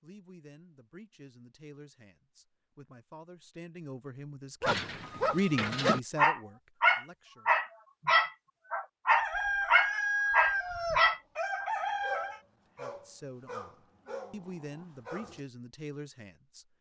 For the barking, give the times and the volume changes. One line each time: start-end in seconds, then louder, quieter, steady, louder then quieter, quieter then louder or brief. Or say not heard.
4.6-15.4 quieter.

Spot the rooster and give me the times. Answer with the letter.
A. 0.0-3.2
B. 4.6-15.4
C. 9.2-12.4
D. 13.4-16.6
C.